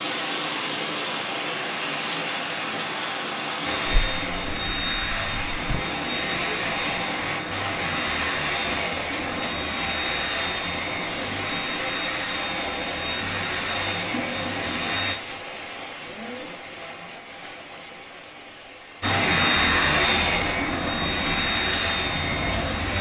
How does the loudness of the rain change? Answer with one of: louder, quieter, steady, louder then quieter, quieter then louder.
quieter.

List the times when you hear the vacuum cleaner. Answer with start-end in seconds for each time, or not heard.
3.6-15.2, 19.0-22.9.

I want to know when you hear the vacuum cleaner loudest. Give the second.
20 s.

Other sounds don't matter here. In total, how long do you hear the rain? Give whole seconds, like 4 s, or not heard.
23 s.